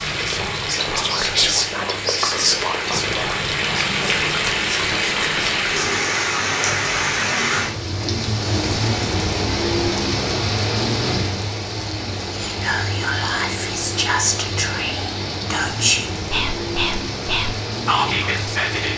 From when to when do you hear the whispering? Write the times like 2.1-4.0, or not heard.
0.0-6.0, 12.3-18.9.